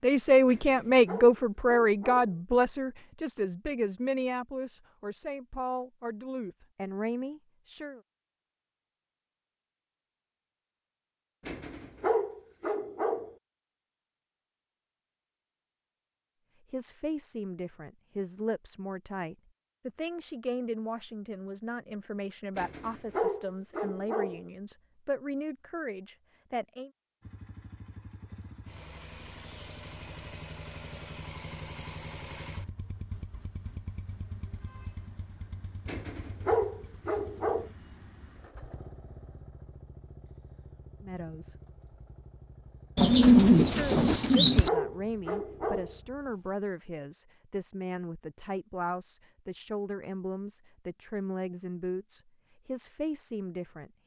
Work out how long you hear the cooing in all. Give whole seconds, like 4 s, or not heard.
2 s.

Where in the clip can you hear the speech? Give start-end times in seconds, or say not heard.
0.0-8.0, 16.7-26.9, 41.0-41.5, 43.6-53.9.